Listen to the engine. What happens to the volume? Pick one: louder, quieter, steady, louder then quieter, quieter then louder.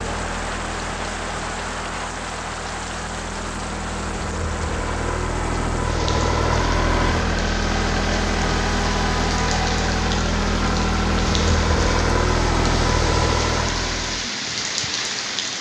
louder.